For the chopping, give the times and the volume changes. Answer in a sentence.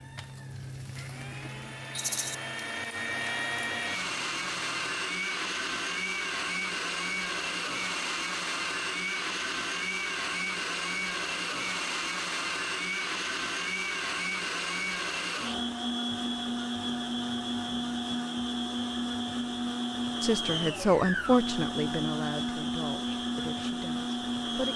You can't hear the chopping here.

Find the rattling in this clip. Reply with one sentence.
You can hear the rattling from 1.9 to 2.4 s.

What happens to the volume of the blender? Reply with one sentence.
The loudness of the blender stays about the same.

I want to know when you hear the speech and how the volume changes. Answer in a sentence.
The speech can be heard from 20.2 to 24.7 s, getting quieter.